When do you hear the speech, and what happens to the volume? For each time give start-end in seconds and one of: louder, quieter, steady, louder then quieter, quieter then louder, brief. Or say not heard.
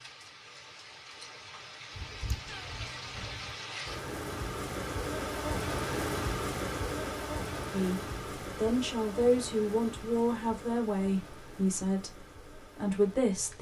7.7-13.5 steady.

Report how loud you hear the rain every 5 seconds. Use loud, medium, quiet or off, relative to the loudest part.
medium, loud, quiet.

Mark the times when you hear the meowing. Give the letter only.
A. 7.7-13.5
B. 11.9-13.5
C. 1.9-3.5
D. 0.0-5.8
C.